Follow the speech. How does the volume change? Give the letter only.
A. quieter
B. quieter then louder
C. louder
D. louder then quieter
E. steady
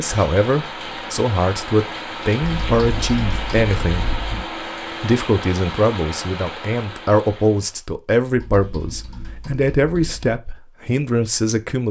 E.